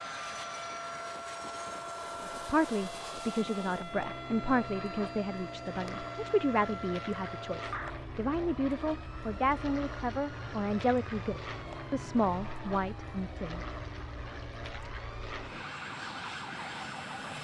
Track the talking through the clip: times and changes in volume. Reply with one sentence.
You can hear the talking from 2.2 to 13.6 s, at a steady volume.